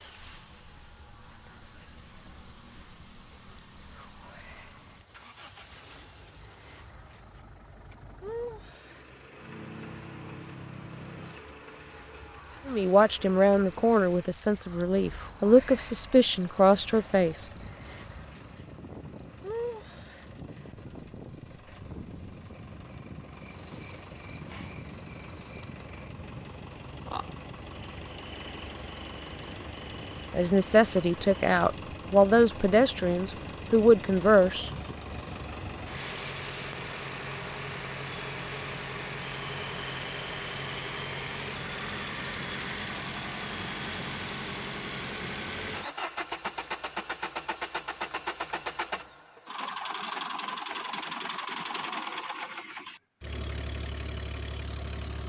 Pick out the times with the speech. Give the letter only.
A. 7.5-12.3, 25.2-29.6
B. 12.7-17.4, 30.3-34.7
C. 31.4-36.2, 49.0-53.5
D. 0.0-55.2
B.